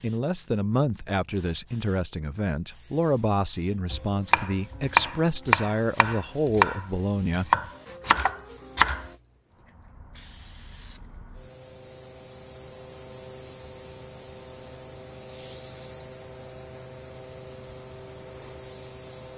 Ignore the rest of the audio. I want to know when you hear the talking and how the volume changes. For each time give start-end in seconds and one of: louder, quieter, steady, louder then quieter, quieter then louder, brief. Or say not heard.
0.0-7.5 steady.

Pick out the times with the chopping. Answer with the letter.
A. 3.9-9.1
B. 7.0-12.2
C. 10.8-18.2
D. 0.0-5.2
A.